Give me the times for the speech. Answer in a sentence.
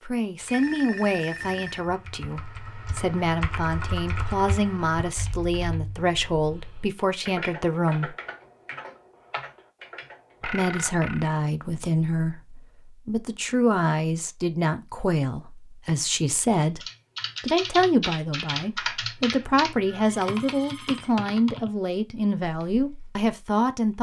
The speech can be heard from 0.1 to 8.2 s, from 10.4 to 16.8 s and from 17.4 to 23.9 s.